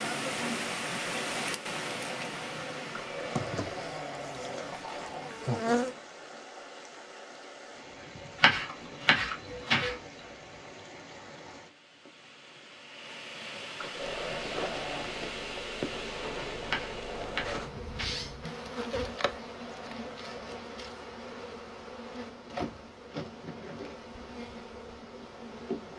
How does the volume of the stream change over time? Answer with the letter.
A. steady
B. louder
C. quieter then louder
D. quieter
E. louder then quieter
C.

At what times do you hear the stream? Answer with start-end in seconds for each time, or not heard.
0.0-17.4.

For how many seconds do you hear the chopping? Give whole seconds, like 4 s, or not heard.
3 s.